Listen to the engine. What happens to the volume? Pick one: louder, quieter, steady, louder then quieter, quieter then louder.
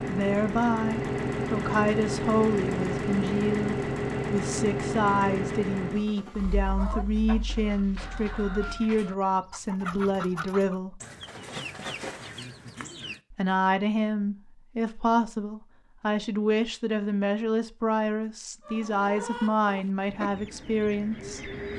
quieter.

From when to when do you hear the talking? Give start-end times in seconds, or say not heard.
0.1-11.0, 13.3-21.5.